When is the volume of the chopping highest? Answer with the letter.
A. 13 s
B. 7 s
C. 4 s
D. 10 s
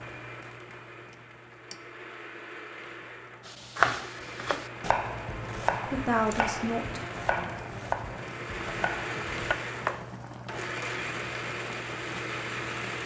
C.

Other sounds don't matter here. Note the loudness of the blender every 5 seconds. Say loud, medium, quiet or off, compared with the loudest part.
medium, loud, loud.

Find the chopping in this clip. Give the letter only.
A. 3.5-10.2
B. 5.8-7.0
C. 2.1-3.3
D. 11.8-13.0
A.